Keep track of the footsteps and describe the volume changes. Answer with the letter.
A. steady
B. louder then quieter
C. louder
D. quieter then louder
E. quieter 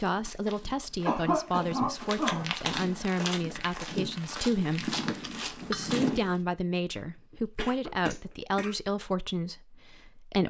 C.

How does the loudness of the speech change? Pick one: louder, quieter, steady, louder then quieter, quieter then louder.
steady.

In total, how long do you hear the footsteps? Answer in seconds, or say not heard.
6 s.